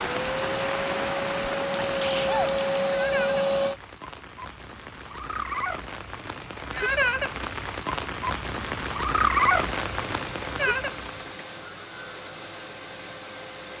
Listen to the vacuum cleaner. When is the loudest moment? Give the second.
3 s.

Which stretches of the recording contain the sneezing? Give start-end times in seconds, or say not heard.
1.8-2.5.